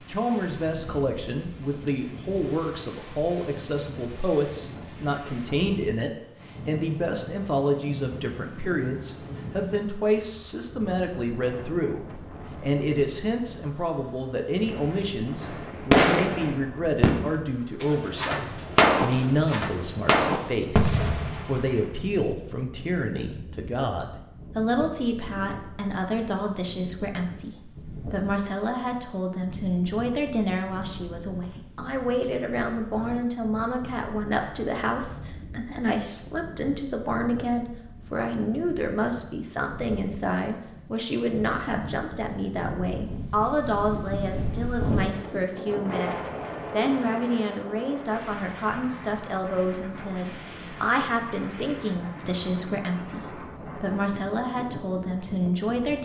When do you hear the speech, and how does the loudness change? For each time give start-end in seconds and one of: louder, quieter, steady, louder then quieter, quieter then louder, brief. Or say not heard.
0.1-55.9 steady.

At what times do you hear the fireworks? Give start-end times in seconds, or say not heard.
14.7-21.9.